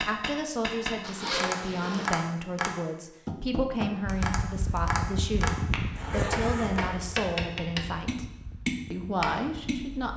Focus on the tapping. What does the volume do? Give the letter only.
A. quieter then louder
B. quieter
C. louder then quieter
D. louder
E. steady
E.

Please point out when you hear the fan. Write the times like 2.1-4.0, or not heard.
4.0-10.1.